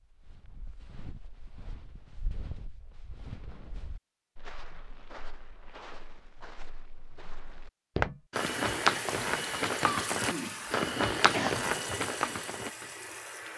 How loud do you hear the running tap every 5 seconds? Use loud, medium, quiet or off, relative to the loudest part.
off, loud, loud.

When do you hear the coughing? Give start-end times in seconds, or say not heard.
9.8-11.5.